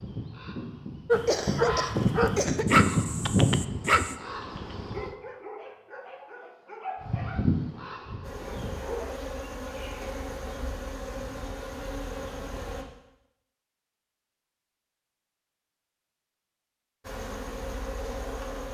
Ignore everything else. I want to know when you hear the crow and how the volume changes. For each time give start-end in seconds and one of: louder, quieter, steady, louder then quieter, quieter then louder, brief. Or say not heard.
0.0-5.1 louder then quieter
7.0-9.0 brief.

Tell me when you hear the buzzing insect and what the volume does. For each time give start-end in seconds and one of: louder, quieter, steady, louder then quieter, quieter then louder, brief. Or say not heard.
8.2-12.8 steady
17.0-18.6 brief.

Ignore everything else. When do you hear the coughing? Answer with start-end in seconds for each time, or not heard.
1.2-2.6.